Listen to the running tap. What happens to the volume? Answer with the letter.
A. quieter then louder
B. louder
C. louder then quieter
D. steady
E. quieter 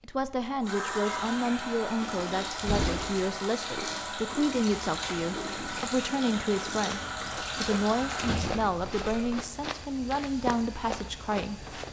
D.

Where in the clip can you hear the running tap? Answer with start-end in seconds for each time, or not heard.
0.0-9.4.